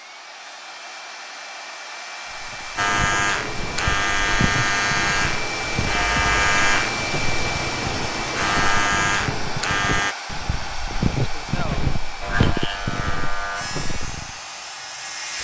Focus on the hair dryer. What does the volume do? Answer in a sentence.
The loudness of the hair dryer goes up, then down.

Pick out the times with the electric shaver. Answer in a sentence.
You can hear the electric shaver from 2.8 to 10.2 s and from 12.2 to 15.4 s.